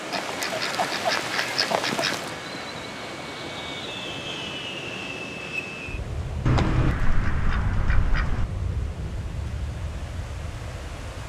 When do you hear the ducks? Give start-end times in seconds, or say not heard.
0.1-2.4, 6.5-8.4.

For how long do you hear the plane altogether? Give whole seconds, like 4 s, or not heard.
11 s.